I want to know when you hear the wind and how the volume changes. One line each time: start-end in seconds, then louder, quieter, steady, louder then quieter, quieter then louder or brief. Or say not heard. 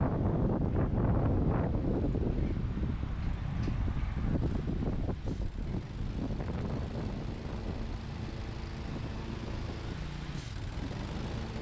0.0-11.5 quieter.